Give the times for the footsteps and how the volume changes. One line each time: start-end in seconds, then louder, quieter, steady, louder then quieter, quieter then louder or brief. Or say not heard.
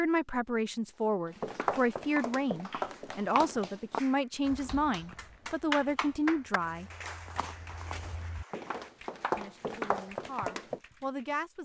1.4-10.8 quieter then louder.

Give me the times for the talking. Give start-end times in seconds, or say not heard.
0.0-6.9, 9.3-11.6.